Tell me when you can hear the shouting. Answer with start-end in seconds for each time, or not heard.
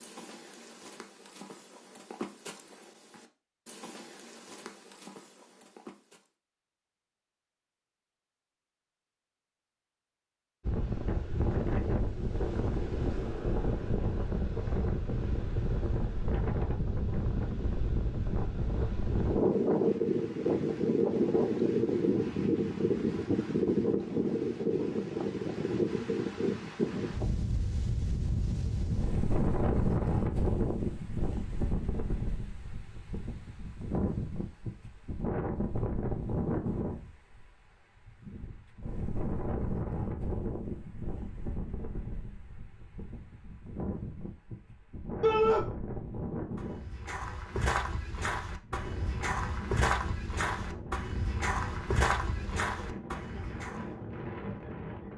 45.2-45.6.